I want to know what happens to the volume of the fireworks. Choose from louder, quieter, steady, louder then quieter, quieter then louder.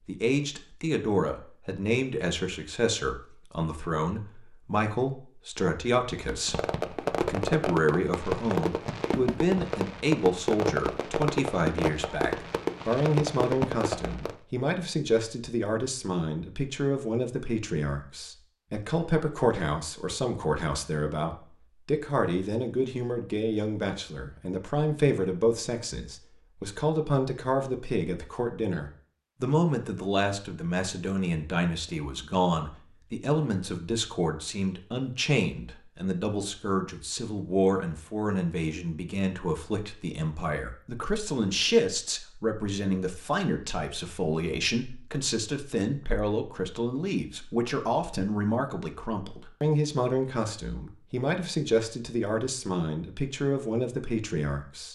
steady.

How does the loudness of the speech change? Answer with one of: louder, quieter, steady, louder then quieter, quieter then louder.
steady.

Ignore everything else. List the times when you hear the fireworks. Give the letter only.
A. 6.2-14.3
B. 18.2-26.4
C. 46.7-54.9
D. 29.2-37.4
A.